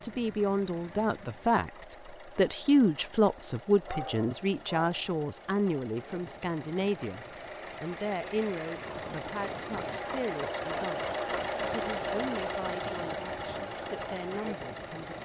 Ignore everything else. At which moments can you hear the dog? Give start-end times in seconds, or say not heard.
3.9-5.1.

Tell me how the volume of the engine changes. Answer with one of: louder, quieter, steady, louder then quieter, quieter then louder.
louder.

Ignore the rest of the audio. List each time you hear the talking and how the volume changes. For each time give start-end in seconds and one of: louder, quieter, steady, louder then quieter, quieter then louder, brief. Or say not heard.
0.0-15.2 quieter.